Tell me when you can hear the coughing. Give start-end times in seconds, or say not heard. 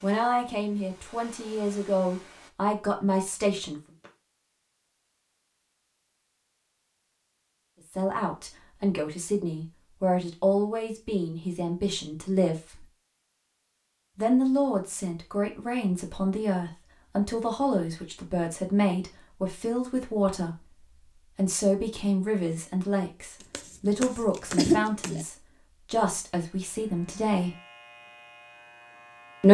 3.4-4.1, 23.5-25.2.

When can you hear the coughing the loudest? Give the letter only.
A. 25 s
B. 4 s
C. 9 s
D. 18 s
A.